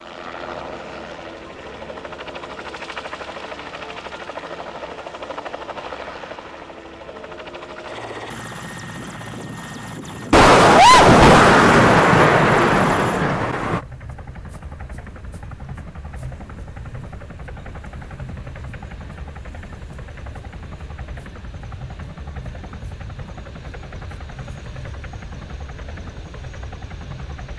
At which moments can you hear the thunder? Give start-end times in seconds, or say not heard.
10.3-13.8.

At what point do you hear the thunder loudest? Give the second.
11 s.